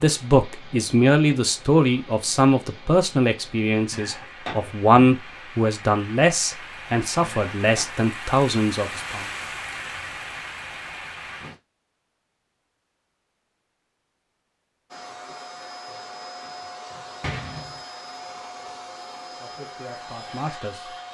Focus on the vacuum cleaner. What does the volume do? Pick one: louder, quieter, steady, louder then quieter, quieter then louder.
steady.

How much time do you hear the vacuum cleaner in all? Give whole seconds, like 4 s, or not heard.
6 s.